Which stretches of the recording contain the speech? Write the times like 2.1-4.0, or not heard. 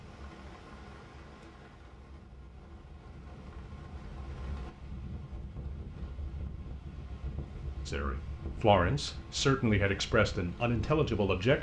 7.8-11.5.